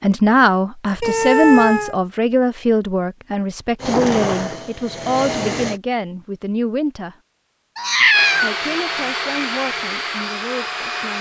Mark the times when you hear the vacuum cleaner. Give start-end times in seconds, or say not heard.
3.8-5.8, 8.1-11.1.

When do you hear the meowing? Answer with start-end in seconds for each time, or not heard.
1.0-1.9, 7.8-8.5.